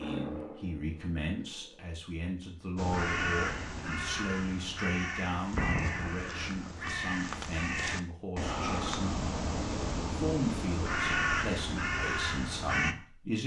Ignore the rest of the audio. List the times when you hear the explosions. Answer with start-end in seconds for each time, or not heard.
5.5-6.6.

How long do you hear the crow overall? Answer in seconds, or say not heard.
10 s.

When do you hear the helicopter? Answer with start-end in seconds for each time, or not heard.
0.0-2.0.